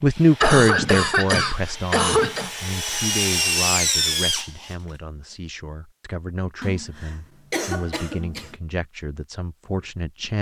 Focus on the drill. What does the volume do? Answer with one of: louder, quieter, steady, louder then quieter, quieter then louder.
louder.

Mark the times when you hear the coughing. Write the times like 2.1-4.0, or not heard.
0.4-2.5, 6.6-8.6.